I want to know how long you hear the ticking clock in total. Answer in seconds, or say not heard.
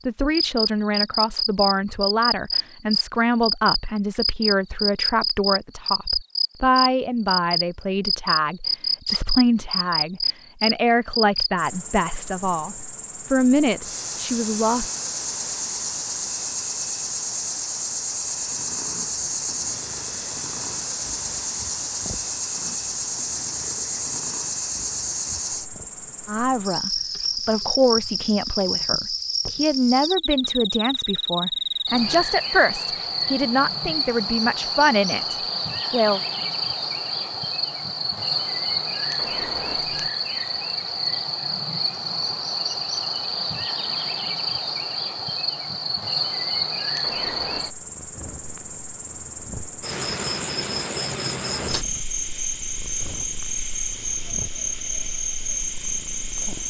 not heard.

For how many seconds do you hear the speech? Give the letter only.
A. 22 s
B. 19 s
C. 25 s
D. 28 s
C.